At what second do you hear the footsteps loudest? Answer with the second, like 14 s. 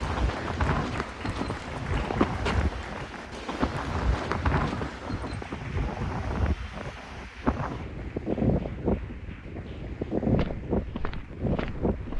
2 s.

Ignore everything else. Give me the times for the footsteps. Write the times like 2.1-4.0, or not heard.
0.0-5.6, 10.3-12.1.